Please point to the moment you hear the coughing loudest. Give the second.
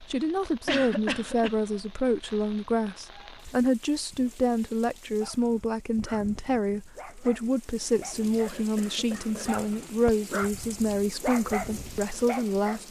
1 s.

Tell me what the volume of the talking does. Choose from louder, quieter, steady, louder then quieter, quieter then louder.
steady.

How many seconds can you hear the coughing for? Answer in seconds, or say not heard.
2 s.